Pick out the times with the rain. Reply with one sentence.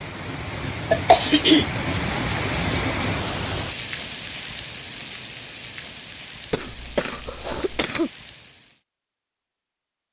You can hear the rain from 0.0 to 8.8 s.